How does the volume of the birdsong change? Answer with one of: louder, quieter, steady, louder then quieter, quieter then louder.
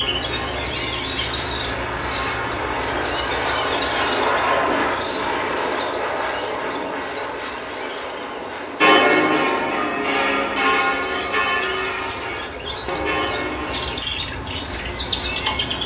quieter then louder.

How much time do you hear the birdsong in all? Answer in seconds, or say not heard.
16 s.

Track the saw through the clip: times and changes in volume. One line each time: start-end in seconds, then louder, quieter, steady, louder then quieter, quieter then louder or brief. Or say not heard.
not heard.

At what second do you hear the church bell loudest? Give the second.
9 s.